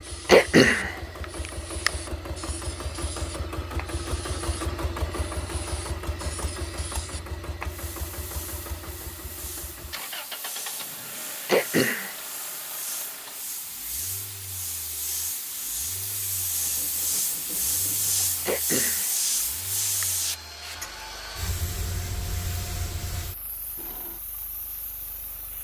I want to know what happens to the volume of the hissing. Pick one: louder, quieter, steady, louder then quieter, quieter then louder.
louder then quieter.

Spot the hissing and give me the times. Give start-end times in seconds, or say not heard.
0.0-25.5.